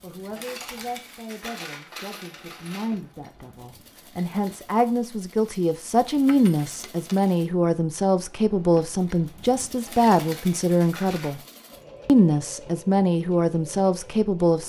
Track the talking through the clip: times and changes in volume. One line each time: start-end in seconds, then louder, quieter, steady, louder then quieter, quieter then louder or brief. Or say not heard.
0.0-11.4 louder
12.1-14.6 brief.